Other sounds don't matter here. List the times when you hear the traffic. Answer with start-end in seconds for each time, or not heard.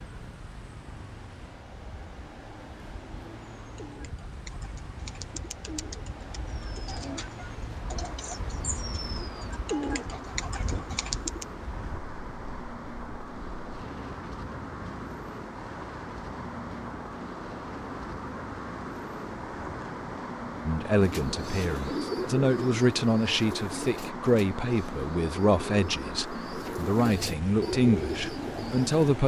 0.0-29.2.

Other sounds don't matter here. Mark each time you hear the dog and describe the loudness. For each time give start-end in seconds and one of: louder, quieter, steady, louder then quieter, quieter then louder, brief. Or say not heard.
not heard.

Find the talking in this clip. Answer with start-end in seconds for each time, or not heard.
20.6-29.2.